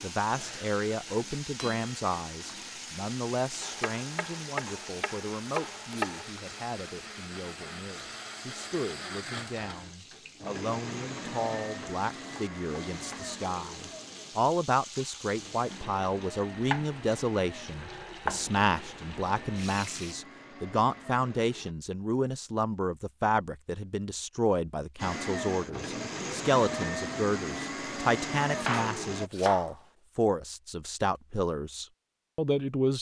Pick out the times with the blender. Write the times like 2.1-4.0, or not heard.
0.2-21.8, 24.9-29.3.